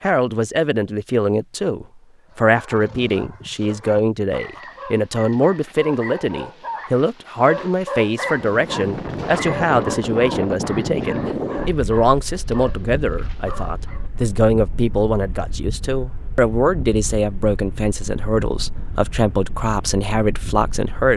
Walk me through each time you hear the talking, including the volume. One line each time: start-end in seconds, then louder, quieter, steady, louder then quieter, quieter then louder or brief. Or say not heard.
0.0-21.1 steady.